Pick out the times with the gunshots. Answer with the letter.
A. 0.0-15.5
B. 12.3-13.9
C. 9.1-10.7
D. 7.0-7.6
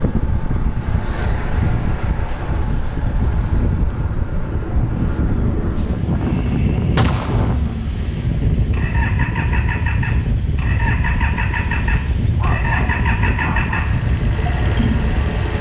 D.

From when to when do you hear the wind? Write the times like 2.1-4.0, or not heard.
0.0-15.5.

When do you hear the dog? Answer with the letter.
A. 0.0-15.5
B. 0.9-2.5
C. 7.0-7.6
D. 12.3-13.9
D.